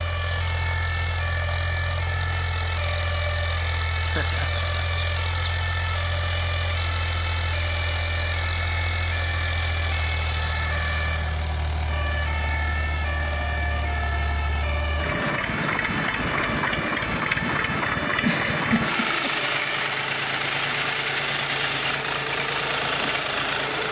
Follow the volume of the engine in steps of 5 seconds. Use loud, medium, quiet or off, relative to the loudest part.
medium, medium, medium, loud, loud.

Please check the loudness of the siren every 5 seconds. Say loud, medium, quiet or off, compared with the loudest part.
loud, loud, loud, loud, off.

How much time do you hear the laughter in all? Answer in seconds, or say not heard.
2 s.